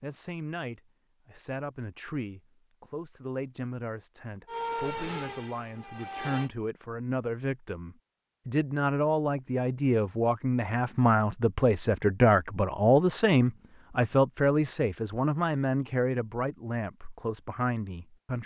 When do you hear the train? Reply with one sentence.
You can hear the train from 4.5 to 6.5 s.